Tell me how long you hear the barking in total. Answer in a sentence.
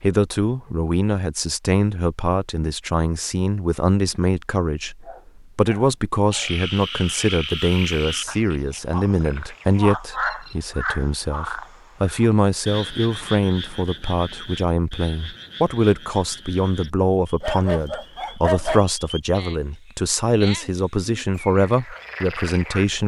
You can hear the barking for 3 seconds altogether.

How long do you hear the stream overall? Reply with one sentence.
You can't hear the stream here.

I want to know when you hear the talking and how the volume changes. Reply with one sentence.
The talking can be heard from 0.0 to 23.0 s, at a steady volume.